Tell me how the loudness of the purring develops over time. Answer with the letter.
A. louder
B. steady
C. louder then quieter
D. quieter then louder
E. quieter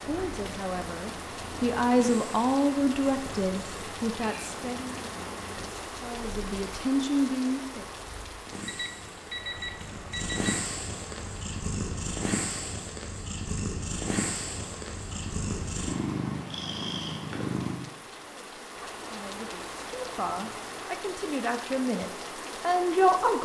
A.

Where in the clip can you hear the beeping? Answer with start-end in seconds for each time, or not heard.
8.7-10.7.